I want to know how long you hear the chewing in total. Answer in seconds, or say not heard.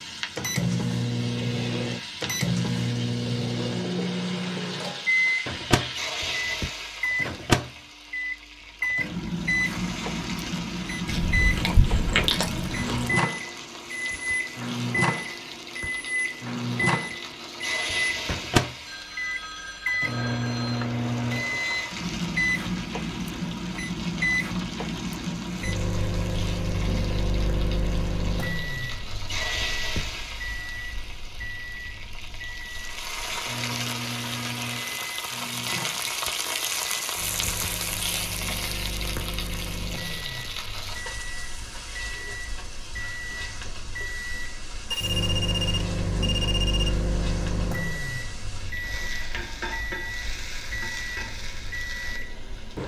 2 s.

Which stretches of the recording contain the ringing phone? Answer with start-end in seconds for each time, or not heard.
18.9-20.9, 44.9-46.9.